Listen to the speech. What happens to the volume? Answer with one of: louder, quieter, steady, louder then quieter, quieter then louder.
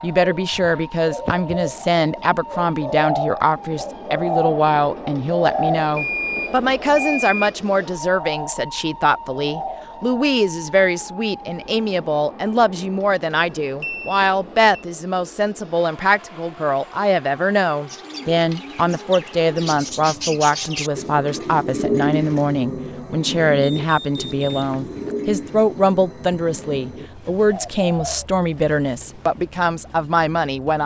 steady.